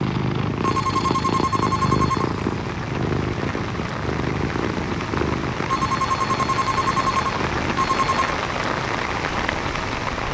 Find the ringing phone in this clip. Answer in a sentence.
You can hear the ringing phone from 0.6 to 2.2 s and from 5.7 to 8.3 s.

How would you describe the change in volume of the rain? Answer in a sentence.
The loudness of the rain goes up.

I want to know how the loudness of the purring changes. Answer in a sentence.
The volume of the purring goes down.